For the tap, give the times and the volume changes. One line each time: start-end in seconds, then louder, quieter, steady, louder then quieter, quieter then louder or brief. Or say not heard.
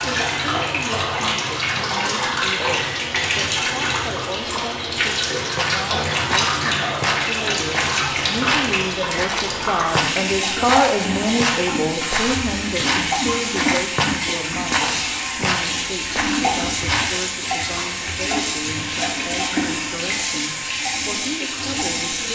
0.0-22.3 steady.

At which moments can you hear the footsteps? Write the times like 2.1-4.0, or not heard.
5.5-17.2.